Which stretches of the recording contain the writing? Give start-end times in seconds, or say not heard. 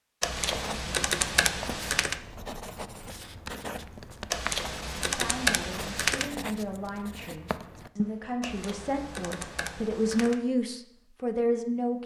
0.2-8.3.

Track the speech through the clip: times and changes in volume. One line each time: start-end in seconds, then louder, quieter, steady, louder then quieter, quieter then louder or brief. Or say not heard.
5.1-12.0 louder.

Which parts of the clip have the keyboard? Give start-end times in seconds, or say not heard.
0.2-2.2, 4.3-6.2, 8.4-10.4.